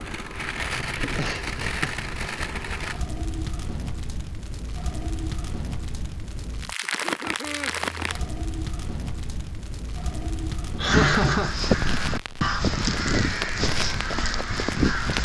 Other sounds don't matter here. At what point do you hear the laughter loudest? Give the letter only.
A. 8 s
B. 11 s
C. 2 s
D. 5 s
B.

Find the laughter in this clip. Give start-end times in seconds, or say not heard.
1.1-2.0, 6.8-7.7, 10.8-11.5.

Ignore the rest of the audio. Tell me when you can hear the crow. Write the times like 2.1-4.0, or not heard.
10.8-15.2.